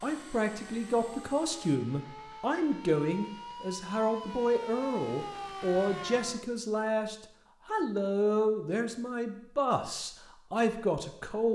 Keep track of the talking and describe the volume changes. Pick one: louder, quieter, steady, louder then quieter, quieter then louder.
steady.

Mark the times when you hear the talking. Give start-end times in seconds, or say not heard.
0.0-11.5.